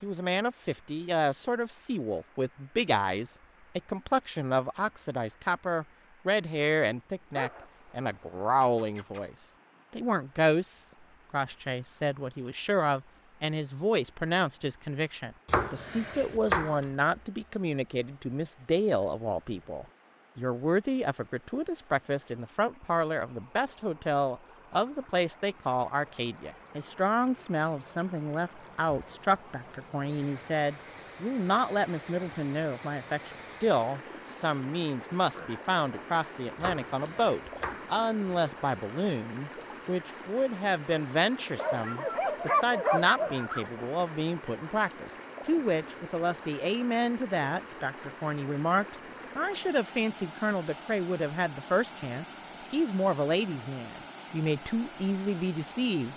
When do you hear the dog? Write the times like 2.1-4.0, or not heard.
7.3-9.2, 41.5-43.7.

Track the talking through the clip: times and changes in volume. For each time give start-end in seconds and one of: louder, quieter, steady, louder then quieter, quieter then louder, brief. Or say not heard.
0.0-56.1 steady.